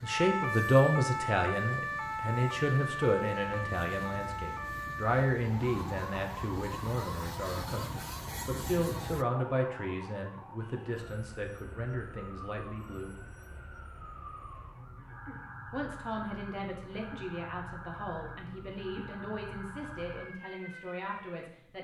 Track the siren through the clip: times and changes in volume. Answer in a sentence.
You can hear the siren from 0.0 to 21.6 s, getting quieter.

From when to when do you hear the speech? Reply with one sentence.
You can hear the speech from 0.0 to 13.2 s and from 15.7 to 21.7 s.